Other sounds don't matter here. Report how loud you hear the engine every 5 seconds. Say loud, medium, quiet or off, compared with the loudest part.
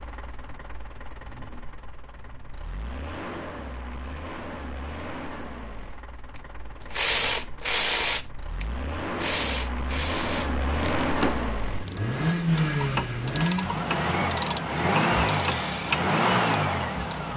quiet, quiet, loud, loud.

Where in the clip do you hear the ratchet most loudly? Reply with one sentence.
The loudest moment of the ratchet is at 7 seconds.